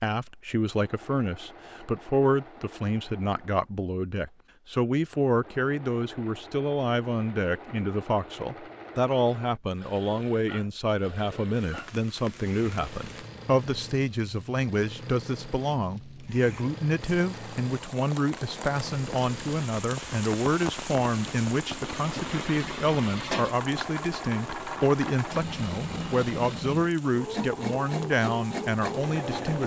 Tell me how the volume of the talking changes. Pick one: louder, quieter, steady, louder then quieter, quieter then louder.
steady.